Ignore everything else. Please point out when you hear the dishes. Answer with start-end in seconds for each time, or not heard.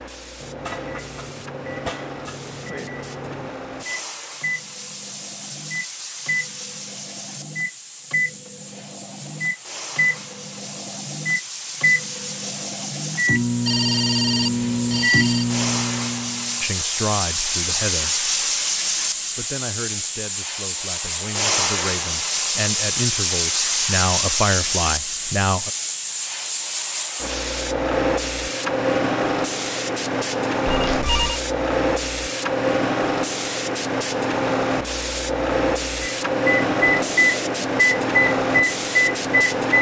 not heard.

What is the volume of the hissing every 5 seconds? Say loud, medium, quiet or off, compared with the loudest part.
quiet, quiet, medium, loud, loud, loud, loud, loud.